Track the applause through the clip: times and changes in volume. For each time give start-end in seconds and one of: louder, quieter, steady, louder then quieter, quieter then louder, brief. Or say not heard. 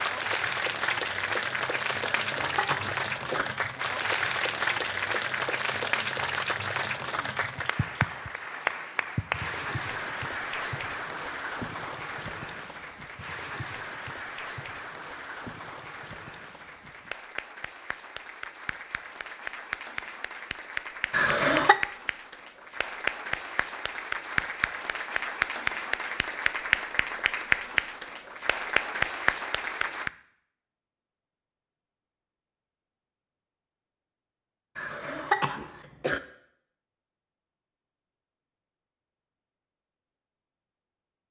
0.0-30.1 quieter then louder.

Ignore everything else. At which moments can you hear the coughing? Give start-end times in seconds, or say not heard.
2.2-3.5, 21.1-21.8, 34.8-36.2.